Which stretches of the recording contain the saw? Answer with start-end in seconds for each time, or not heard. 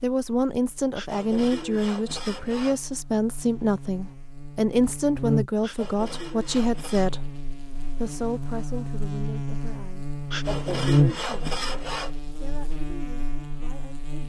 0.9-2.8, 5.6-7.2, 10.3-12.1.